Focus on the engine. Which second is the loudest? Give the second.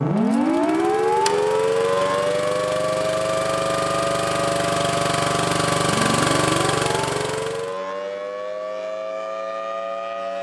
6 s.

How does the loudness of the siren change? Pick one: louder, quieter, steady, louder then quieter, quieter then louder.
quieter.